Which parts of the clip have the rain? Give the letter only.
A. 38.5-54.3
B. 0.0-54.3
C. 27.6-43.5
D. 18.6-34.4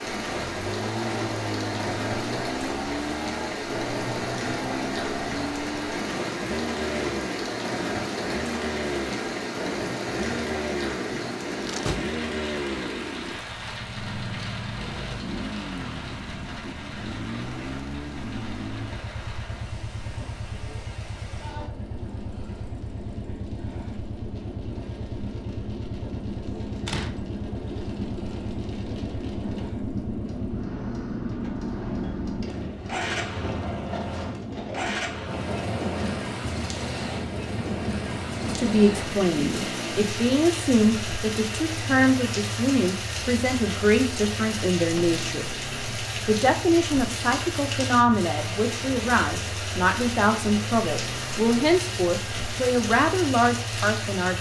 B.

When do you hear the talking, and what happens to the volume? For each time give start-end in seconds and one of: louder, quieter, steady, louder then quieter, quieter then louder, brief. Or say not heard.
38.5-54.3 steady.